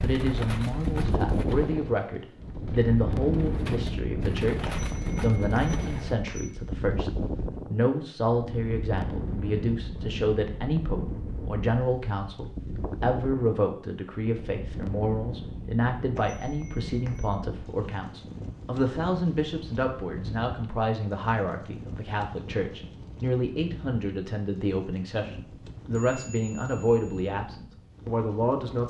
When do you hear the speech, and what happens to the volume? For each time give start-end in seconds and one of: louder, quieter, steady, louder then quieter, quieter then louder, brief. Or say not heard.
0.0-28.8 steady.